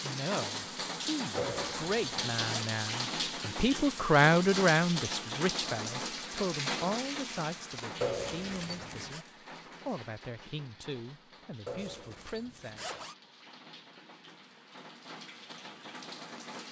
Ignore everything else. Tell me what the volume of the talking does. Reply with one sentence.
The volume of the talking goes up, then down.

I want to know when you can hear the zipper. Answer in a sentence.
The zipper can be heard from 1.4 to 2.7 s, from 8.0 to 9.2 s and from 11.7 to 13.2 s.